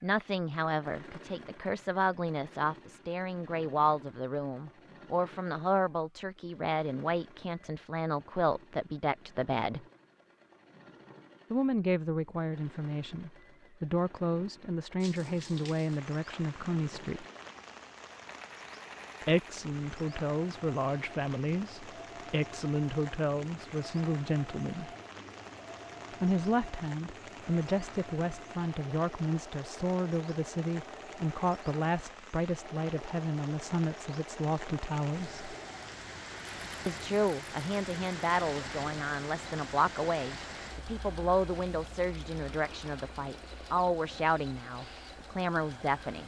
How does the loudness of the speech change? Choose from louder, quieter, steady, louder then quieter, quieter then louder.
steady.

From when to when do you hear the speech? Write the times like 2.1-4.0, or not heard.
0.0-9.8, 11.5-17.2, 19.2-24.9, 26.2-35.5, 36.9-46.2.